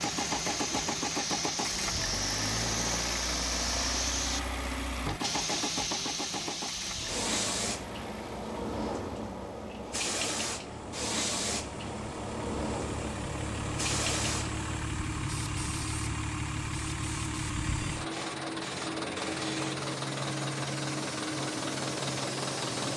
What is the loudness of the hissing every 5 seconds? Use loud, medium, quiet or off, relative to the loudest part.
loud, loud, loud, medium, medium.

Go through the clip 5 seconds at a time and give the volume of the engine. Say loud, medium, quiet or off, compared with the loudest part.
loud, medium, medium, loud, loud.